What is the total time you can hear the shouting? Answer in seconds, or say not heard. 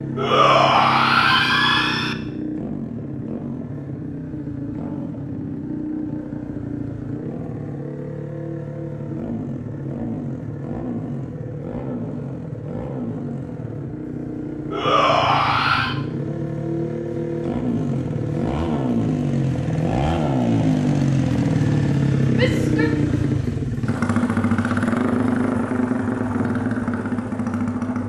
4 s.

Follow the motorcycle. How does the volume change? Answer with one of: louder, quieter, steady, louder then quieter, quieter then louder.
louder.